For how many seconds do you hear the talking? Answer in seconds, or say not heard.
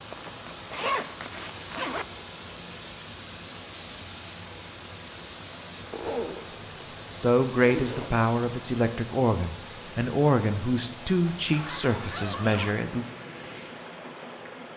6 s.